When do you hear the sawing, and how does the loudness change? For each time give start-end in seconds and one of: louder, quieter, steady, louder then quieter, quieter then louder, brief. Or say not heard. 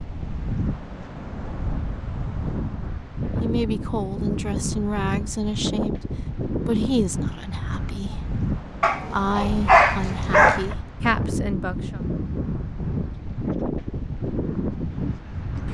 not heard.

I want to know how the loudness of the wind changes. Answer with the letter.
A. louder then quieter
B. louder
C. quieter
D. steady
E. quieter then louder
D.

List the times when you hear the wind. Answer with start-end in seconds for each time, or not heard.
0.0-15.7.